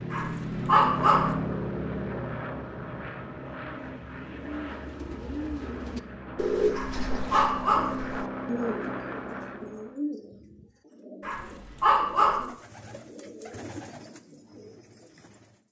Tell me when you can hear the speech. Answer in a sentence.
The speech can't be heard in this clip.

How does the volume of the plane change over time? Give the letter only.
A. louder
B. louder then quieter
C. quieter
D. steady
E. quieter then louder
E.